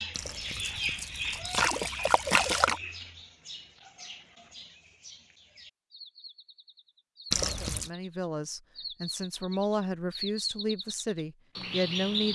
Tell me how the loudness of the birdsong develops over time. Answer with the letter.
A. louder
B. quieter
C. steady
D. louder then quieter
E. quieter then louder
E.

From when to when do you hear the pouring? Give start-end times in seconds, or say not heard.
0.1-2.8, 7.3-7.9.